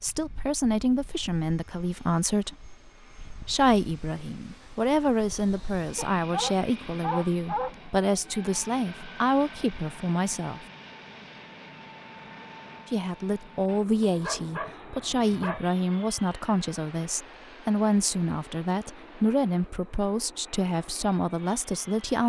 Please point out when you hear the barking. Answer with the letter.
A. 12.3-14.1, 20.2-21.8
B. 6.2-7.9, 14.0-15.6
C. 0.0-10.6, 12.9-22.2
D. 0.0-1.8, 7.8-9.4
B.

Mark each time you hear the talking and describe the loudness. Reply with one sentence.
The talking can be heard from 0.0 to 10.6 s, at a steady volume; and from 12.9 to 22.2 s, at a steady volume.